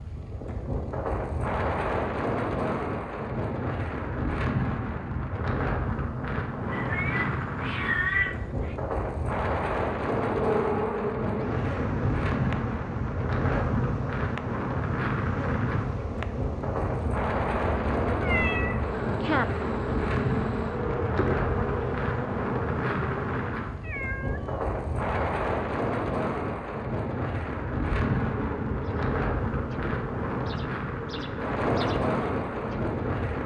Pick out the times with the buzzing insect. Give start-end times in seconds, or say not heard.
10.2-23.6, 28.0-33.4.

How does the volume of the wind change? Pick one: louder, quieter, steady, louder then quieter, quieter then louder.
steady.